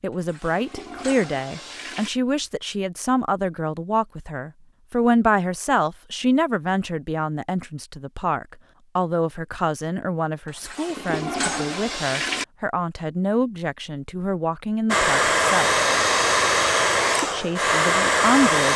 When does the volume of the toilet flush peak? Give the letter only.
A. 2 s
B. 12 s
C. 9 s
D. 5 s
B.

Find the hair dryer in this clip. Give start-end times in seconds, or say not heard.
14.8-18.7.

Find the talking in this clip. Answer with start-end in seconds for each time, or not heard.
0.0-15.8, 17.2-18.7.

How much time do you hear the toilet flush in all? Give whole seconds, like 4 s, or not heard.
4 s.